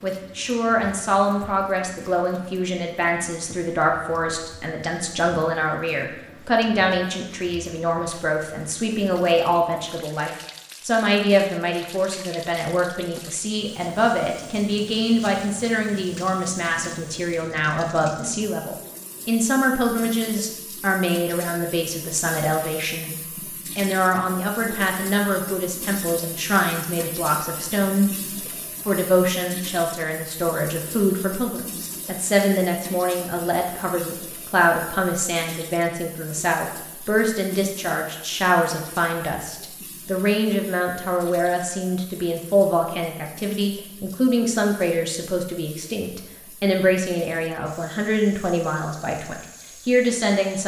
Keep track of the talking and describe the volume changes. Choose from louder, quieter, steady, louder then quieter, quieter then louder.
steady.